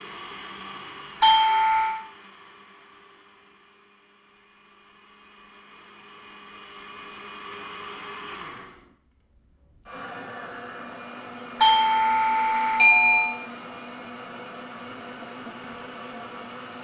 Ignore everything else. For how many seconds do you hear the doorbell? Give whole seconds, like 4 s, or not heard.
3 s.